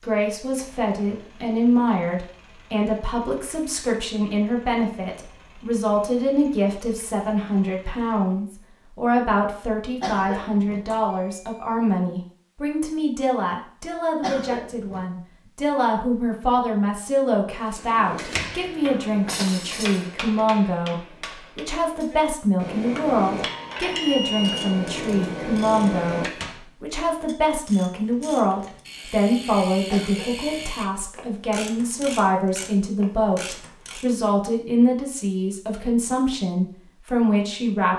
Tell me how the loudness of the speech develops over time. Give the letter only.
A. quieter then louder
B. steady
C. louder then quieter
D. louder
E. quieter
B.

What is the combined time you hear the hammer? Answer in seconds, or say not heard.
9 s.